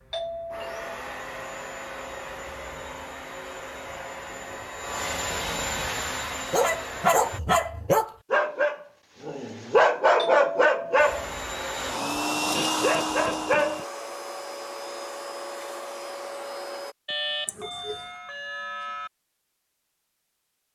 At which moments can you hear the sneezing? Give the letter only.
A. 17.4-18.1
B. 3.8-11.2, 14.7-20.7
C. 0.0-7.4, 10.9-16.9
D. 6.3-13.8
A.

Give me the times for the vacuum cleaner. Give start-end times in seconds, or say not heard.
0.0-7.4, 10.9-16.9.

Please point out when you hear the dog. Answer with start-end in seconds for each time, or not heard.
6.3-13.8.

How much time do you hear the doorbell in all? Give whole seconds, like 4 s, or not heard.
4 s.